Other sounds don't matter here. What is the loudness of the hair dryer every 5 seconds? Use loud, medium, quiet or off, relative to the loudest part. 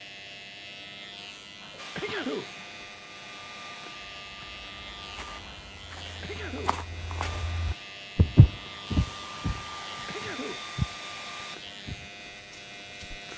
medium, loud, loud.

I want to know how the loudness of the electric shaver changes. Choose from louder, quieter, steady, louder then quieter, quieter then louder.
steady.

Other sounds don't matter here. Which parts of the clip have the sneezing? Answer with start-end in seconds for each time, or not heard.
1.7-2.5, 6.0-6.8, 9.8-10.7.